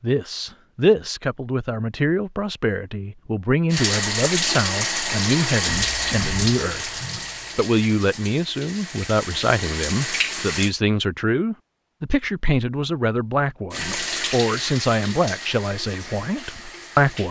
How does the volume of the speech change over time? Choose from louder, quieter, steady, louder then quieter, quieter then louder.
steady.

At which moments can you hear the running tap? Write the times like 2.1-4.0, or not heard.
3.7-10.8, 13.7-17.2.